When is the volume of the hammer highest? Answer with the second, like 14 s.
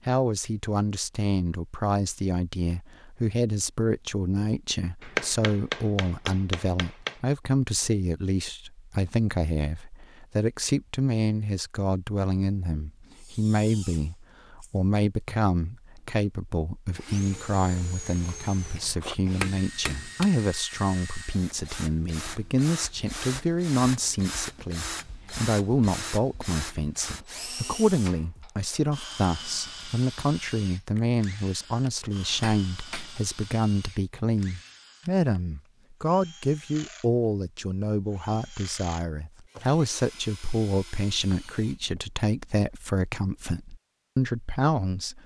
5 s.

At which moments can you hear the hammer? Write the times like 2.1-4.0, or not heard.
5.0-7.2, 18.1-20.2, 31.6-33.3.